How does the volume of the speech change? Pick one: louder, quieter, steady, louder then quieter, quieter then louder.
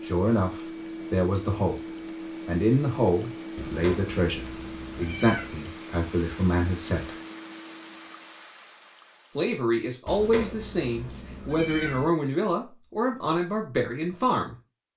steady.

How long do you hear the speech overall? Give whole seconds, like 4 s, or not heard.
12 s.